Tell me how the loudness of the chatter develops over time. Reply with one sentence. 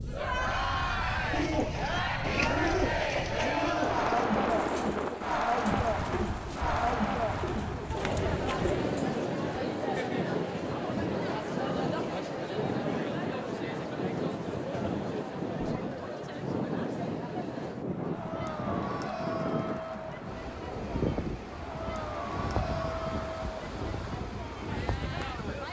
The loudness of the chatter goes down.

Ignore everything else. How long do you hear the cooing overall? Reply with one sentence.
You can hear the cooing for 8 seconds altogether.